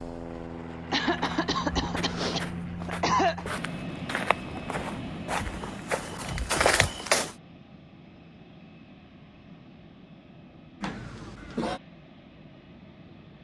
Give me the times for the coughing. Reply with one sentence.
The coughing can be heard from 0.9 to 3.5 s and from 10.8 to 11.8 s.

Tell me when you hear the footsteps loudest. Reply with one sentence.
The loudest moment of the footsteps is at 7 seconds.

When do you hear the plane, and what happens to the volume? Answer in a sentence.
The plane can be heard from 0.0 to 13.3 s, getting quieter.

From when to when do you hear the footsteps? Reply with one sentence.
The footsteps can be heard from 1.1 to 7.3 s.